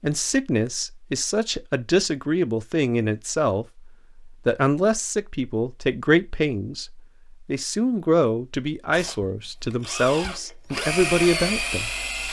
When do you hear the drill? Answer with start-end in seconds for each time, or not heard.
8.9-12.2.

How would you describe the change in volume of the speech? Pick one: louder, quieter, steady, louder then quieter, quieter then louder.
steady.